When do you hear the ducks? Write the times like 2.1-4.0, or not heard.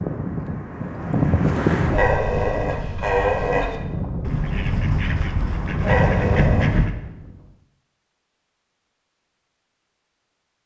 4.2-6.9.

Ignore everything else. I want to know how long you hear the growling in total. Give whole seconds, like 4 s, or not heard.
3 s.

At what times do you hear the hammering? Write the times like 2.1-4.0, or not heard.
not heard.